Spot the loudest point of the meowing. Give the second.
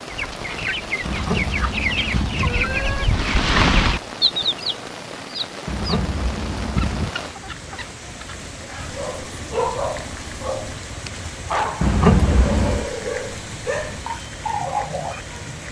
12 s.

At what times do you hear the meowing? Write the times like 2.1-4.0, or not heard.
1.1-3.0, 5.7-7.1, 11.8-12.8.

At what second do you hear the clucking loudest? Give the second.
4 s.